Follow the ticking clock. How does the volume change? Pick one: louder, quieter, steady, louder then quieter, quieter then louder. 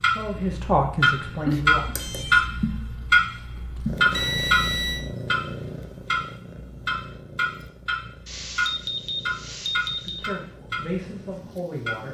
quieter.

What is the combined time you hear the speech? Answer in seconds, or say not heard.
4 s.